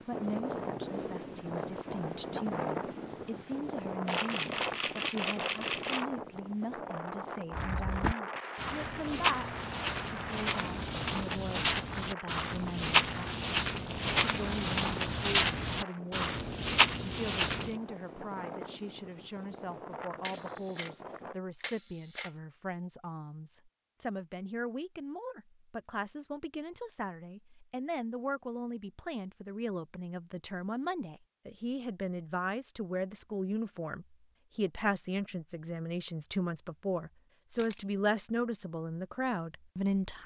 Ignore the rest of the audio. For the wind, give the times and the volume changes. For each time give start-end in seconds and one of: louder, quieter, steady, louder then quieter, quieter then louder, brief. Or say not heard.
0.0-21.4 quieter.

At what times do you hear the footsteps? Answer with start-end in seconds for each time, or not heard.
7.5-17.8.